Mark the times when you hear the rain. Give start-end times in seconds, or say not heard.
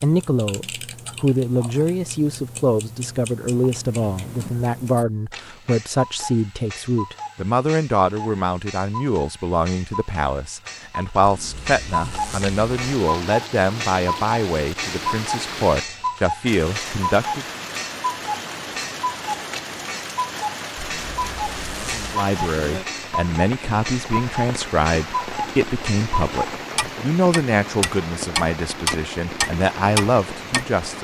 12.4-30.9.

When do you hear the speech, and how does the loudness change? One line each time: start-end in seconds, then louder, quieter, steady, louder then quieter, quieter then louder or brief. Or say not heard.
0.0-17.4 steady
22.1-30.9 steady.